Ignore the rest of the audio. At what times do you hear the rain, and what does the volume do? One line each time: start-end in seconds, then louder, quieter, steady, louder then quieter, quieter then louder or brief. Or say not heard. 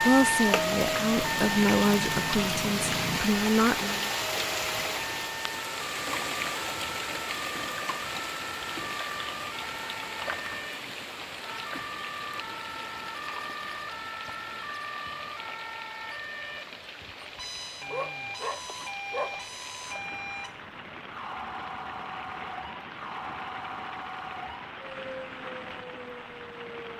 0.0-26.9 quieter.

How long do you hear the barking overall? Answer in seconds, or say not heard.
2 s.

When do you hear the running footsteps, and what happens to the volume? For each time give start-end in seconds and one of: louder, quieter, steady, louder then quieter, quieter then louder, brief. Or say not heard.
not heard.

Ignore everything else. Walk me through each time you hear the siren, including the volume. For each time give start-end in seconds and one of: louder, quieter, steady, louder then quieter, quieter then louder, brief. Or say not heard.
0.0-26.9 quieter.